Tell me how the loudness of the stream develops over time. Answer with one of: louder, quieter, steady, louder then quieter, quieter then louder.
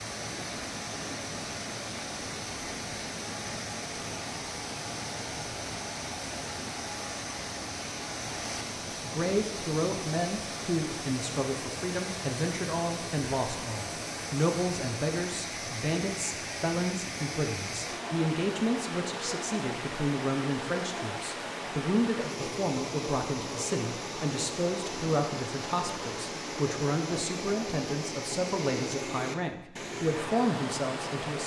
steady.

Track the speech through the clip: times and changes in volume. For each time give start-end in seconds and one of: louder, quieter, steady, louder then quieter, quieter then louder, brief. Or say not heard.
9.0-31.4 steady.